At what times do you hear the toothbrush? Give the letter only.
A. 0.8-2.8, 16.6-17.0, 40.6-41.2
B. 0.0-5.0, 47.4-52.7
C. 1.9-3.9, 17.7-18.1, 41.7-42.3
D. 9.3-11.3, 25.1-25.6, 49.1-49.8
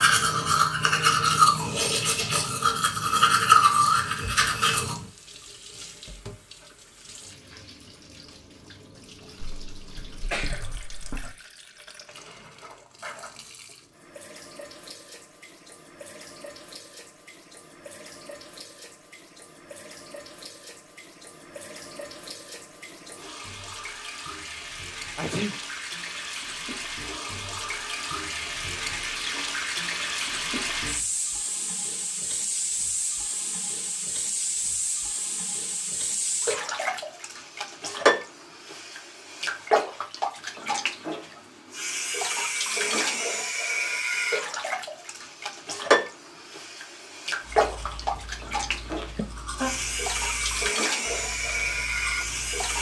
B.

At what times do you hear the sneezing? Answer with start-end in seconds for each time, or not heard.
9.3-11.3, 25.1-25.6, 49.1-49.8.